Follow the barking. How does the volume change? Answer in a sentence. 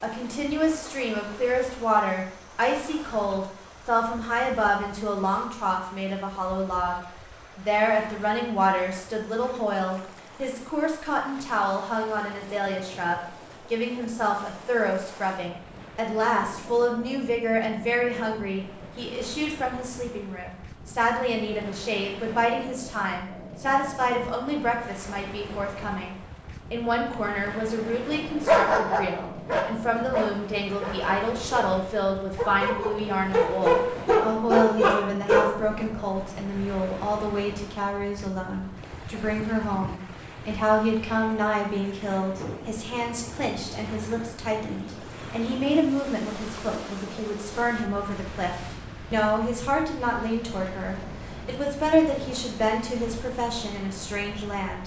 The volume of the barking goes down, then up.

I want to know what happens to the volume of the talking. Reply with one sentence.
The volume of the talking stays about the same.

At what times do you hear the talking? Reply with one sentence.
You can hear the talking from 0.0 to 54.8 s.